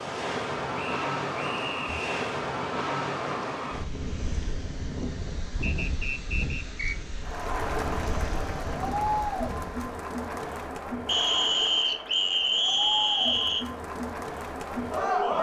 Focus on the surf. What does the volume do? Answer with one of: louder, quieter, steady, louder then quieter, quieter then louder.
quieter.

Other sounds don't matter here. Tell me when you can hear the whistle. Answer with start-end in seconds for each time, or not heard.
0.8-2.1, 5.6-7.0, 11.1-13.7.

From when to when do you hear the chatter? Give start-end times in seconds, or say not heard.
7.2-15.3.